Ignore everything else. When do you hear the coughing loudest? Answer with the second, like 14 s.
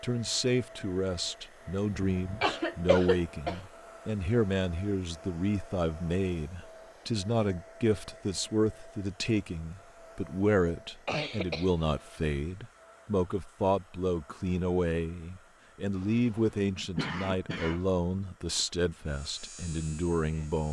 3 s.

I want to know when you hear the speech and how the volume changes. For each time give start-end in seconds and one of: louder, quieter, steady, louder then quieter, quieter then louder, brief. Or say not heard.
0.0-20.6 steady.